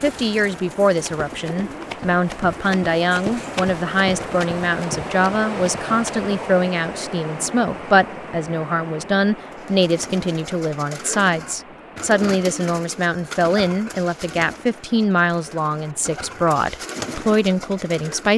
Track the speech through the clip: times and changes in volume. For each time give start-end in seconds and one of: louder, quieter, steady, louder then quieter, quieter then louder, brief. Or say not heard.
0.0-18.3 steady.